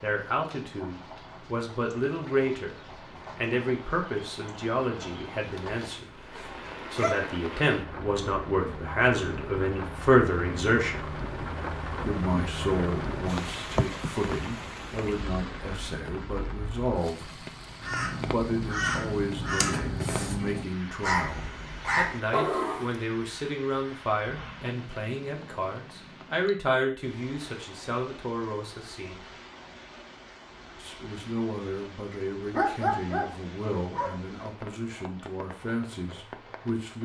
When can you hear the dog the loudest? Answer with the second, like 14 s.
33 s.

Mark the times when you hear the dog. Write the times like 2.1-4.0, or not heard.
5.7-7.2, 32.5-34.1.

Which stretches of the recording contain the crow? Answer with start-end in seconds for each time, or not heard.
17.8-23.0.